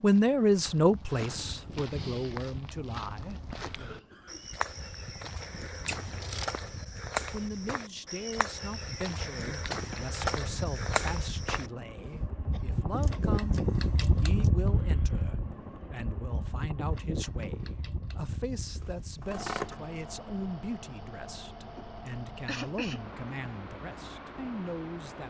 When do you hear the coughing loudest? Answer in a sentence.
The loudest moment of the coughing is at 23 seconds.